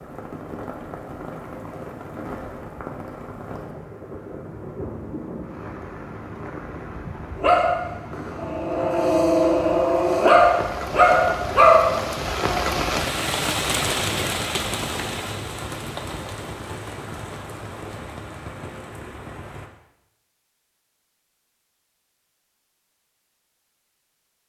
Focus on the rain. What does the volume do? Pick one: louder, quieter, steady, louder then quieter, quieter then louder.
louder then quieter.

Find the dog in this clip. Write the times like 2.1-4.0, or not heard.
7.3-12.8.